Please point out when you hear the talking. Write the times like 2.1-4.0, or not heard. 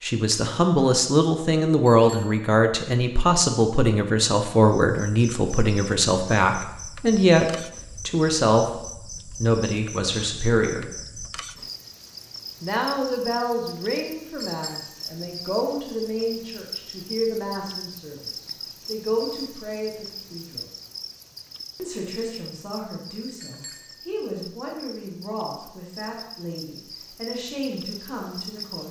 0.0-7.5, 8.1-10.8, 12.6-20.6, 21.8-28.8.